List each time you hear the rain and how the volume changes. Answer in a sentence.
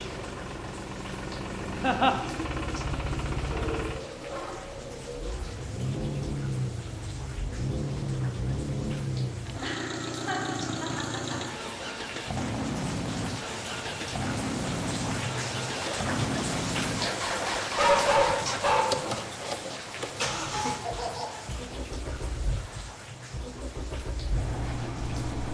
The rain can be heard from 0.0 to 25.4 s, getting louder then quieter.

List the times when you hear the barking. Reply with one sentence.
The barking can be heard from 3.5 to 5.5 s and from 17.8 to 19.1 s.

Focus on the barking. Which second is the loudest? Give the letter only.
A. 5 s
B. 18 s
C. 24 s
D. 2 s
B.